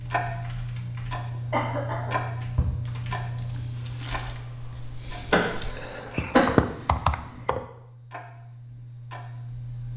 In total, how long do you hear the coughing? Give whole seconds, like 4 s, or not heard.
2 s.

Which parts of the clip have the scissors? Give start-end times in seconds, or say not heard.
not heard.